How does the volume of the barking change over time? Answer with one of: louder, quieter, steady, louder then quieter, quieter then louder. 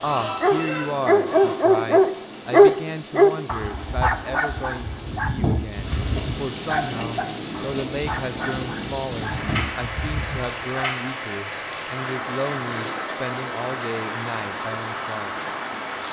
quieter.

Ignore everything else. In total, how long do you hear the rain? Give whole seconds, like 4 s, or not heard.
16 s.